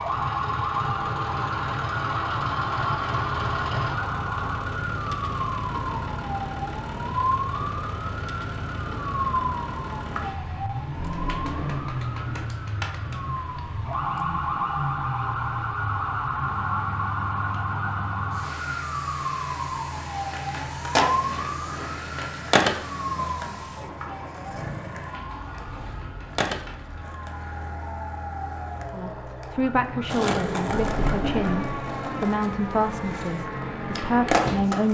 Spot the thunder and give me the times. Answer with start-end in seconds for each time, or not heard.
10.9-12.4, 30.7-32.2.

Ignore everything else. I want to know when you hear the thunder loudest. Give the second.
31 s.